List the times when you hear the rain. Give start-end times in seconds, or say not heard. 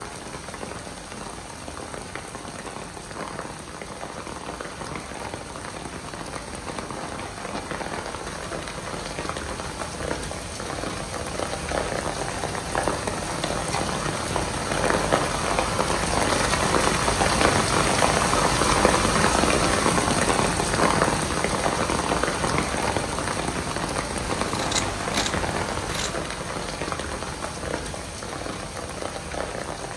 0.0-29.9.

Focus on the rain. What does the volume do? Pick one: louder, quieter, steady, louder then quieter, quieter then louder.
louder then quieter.